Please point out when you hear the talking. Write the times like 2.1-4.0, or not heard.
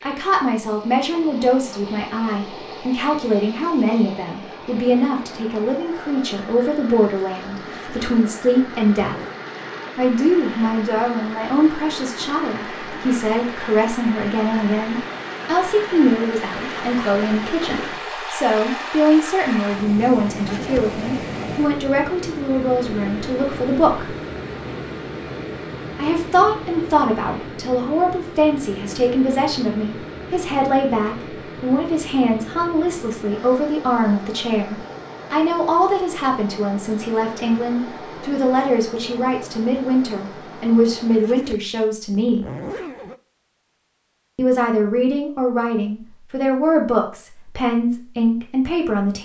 0.0-9.2, 9.9-24.1, 25.9-42.5, 44.4-49.2.